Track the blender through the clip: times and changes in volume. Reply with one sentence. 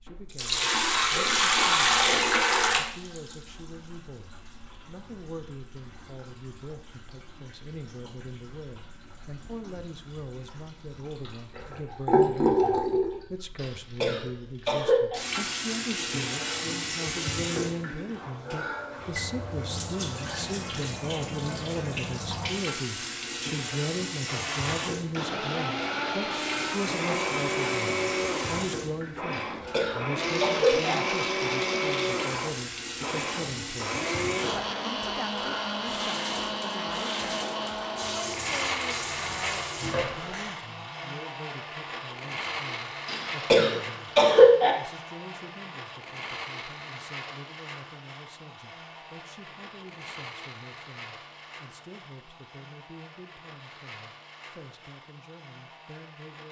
You can hear the blender from 24.2 to 56.4 s, getting quieter.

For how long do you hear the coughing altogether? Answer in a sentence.
You can hear the coughing for 5 seconds altogether.